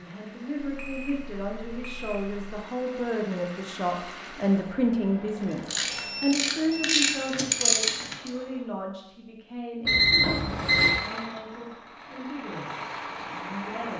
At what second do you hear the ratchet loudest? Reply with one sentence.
The loudest moment of the ratchet is at 8 seconds.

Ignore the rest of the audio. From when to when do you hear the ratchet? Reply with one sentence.
The ratchet can be heard from 5.3 to 8.3 s.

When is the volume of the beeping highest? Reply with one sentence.
The volume of the beeping peaks at 10 seconds.